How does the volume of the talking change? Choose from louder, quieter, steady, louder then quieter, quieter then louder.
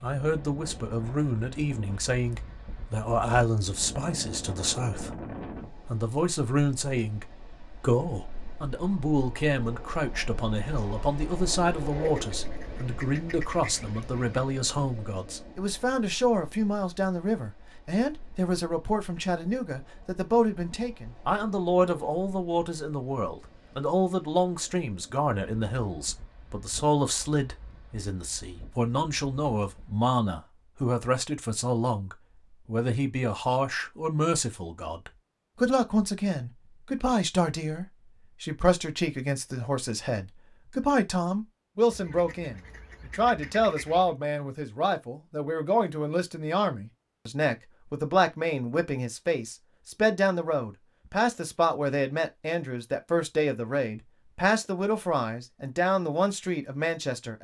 steady.